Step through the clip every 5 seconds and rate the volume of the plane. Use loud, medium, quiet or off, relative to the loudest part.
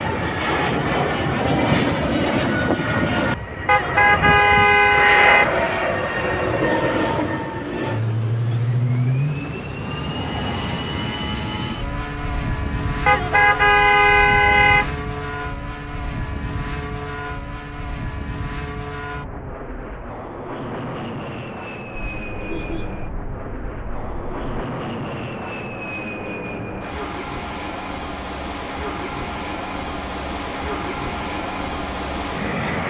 loud, loud, medium, medium, medium, medium, medium.